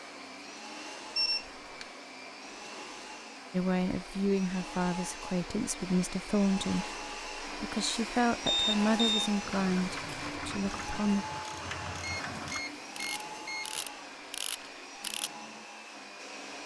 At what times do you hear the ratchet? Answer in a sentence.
You can hear the ratchet from 9.4 to 15.3 s.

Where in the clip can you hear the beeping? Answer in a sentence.
You can hear the beeping from 1.1 to 1.9 s, from 8.4 to 9.3 s and from 12.0 to 13.7 s.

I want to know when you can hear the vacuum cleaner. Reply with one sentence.
You can hear the vacuum cleaner from 0.0 to 16.6 s.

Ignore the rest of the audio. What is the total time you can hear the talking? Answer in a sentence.
You can hear the talking for 8 seconds altogether.